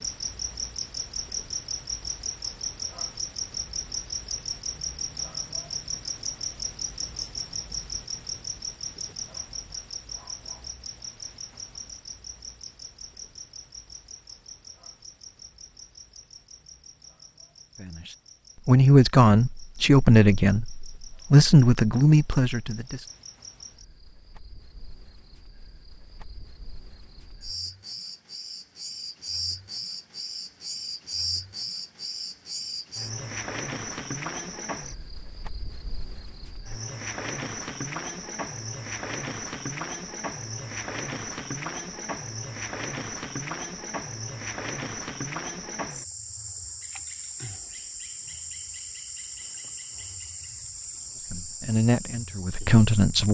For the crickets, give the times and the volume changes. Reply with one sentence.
The crickets can be heard from 0.0 to 53.3 s, getting quieter then louder.